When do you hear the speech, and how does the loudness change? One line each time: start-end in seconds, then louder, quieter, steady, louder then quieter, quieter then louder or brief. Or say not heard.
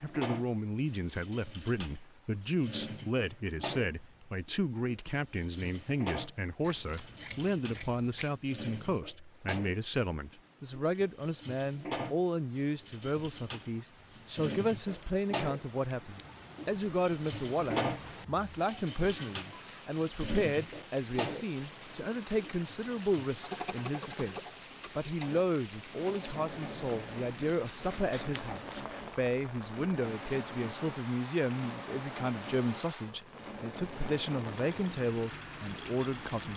0.0-36.5 steady.